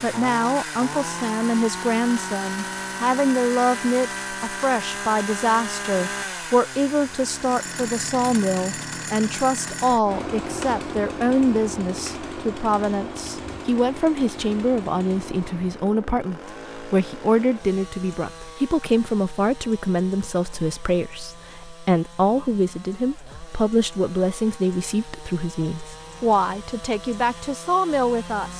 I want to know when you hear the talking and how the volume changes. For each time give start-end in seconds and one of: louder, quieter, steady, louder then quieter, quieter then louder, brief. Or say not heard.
0.0-28.5 steady.